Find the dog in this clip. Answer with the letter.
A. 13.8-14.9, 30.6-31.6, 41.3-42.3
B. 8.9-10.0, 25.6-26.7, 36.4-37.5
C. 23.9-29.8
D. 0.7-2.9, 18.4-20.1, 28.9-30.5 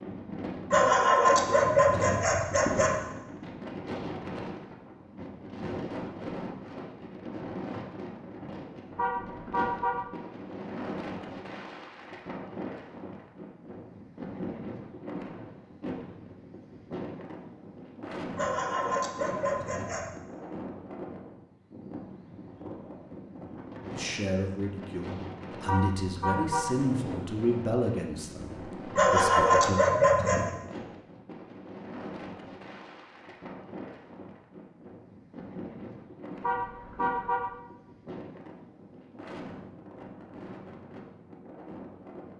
D.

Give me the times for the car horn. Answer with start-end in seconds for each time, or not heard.
8.9-10.0, 25.6-26.7, 36.4-37.5.